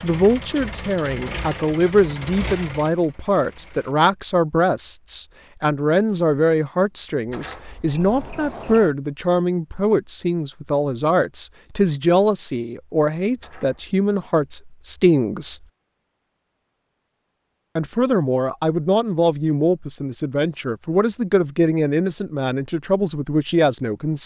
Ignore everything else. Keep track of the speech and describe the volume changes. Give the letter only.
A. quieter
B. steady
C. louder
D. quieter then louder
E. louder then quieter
B.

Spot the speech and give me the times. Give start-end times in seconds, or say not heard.
0.0-15.6, 17.8-24.2.